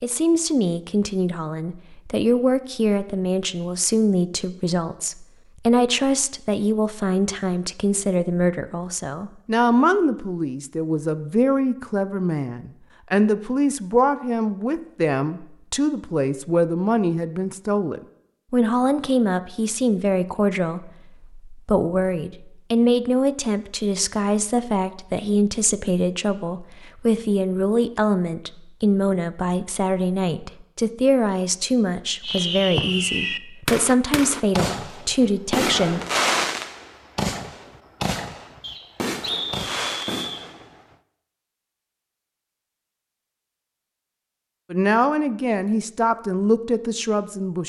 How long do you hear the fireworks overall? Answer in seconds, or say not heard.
9 s.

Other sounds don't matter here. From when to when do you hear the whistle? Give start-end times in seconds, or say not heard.
38.6-40.5.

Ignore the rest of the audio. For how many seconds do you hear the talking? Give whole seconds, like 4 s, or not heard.
39 s.